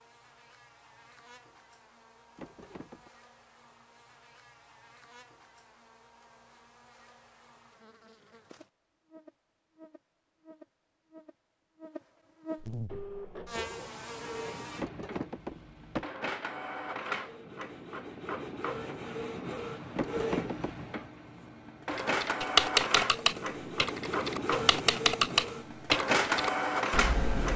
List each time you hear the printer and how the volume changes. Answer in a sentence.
The printer can be heard from 12.8 to 27.5 s, getting louder.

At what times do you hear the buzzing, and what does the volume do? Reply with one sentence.
You can hear the buzzing from 0.0 to 14.8 s, getting louder.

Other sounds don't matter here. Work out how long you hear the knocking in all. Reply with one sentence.
The knocking can be heard for 3 seconds in total.